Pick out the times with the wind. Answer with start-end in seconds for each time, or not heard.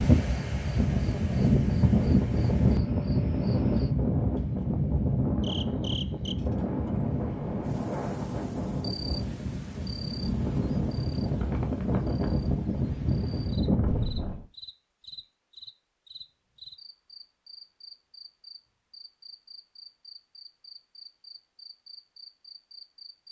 0.0-14.4.